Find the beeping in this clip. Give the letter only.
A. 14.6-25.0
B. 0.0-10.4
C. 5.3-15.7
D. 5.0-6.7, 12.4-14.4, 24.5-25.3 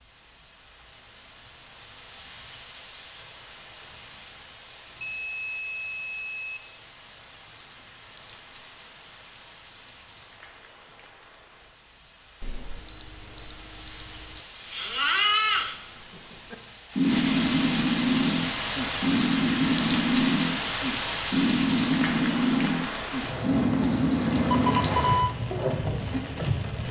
D.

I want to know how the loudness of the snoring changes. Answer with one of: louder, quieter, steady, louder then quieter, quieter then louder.
steady.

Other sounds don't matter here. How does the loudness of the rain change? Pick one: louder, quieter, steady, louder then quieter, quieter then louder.
louder.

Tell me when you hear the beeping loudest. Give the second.
25 s.